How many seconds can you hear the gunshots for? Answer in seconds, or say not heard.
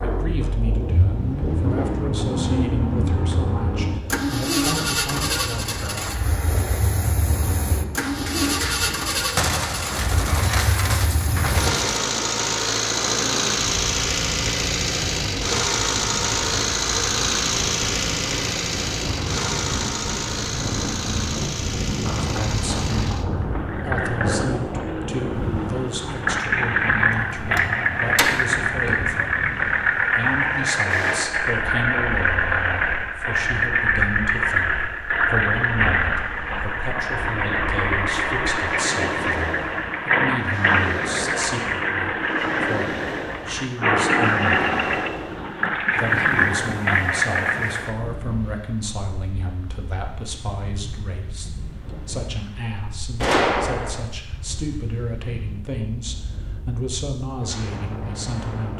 6 s.